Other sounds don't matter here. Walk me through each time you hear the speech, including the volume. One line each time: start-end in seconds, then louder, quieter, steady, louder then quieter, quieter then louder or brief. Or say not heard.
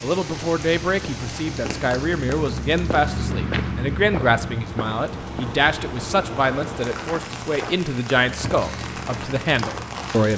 0.0-10.3 steady.